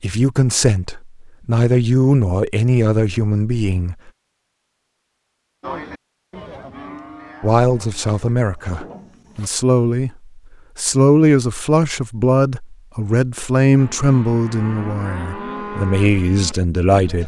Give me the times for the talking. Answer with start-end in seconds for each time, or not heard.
0.0-4.0, 7.4-17.2.